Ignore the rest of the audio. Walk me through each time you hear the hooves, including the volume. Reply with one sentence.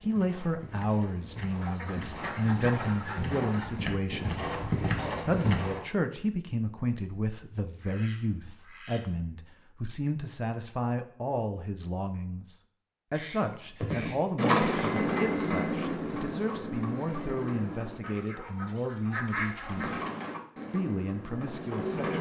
You can hear the hooves from 0.0 to 5.8 s, getting louder; from 13.4 to 18.2 s, getting quieter; and briefly from 19.7 to 22.1 s.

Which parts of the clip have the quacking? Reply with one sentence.
The quacking can be heard from 1.6 to 3.7 s, from 7.8 to 9.2 s, from 13.1 to 14.9 s and from 18.0 to 20.1 s.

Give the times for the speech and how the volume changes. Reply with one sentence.
You can hear the speech from 0.0 to 20.0 s, at a steady volume; and briefly from 20.7 to 22.1 s.